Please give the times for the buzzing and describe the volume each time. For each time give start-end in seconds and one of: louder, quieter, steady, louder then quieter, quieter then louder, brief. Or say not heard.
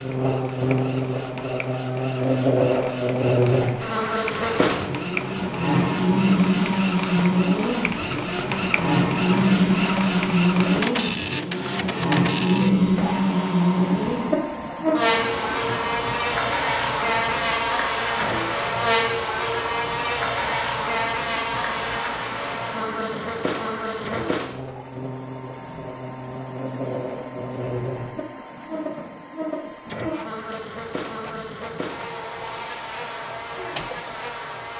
0.0-34.7 quieter.